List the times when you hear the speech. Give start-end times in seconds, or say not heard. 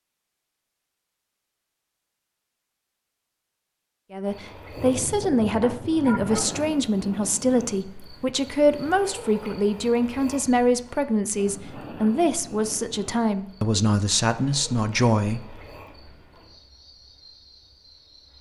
4.1-15.6.